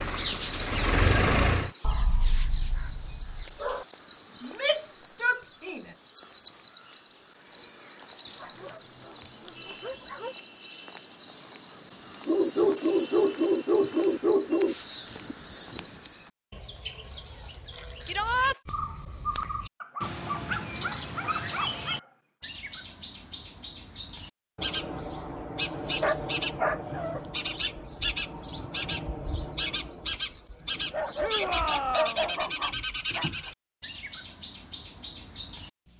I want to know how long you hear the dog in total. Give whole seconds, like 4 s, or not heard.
12 s.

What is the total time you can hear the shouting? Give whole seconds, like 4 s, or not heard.
3 s.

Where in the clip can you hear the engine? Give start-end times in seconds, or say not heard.
0.0-1.7.